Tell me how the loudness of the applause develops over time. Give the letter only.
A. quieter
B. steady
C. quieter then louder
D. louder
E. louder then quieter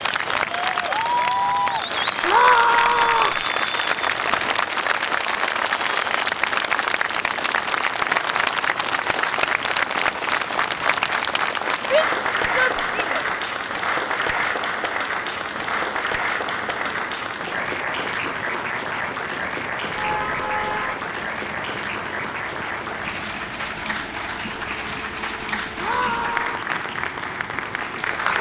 A.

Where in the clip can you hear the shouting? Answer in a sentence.
You can hear the shouting from 2.2 to 3.4 s, from 11.9 to 13.2 s and from 25.8 to 26.6 s.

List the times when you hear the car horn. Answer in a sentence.
You can hear the car horn from 4.0 to 4.5 s and from 19.9 to 20.9 s.